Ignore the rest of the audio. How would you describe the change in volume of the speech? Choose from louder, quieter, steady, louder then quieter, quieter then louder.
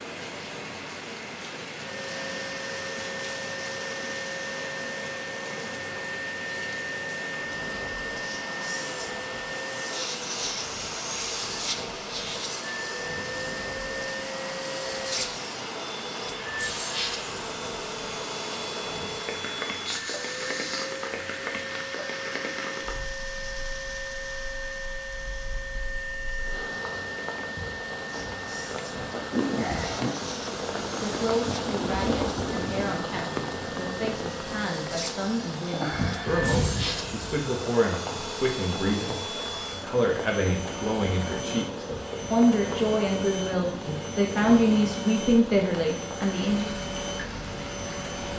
louder.